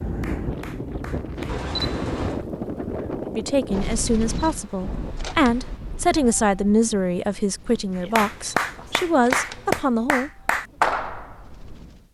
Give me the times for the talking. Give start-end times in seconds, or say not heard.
3.2-10.3.